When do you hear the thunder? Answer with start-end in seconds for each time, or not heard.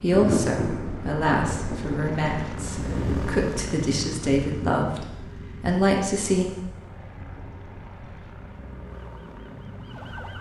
0.1-3.5.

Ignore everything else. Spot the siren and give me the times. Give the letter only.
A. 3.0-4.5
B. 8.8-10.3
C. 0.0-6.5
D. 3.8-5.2
B.